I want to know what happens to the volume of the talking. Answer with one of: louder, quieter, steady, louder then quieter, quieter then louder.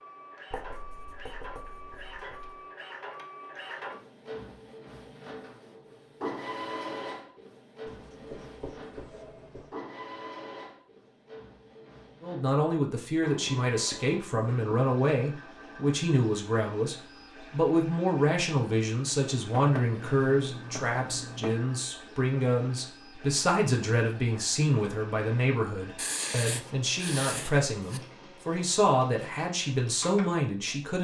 steady.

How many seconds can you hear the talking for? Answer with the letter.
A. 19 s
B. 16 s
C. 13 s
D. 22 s
A.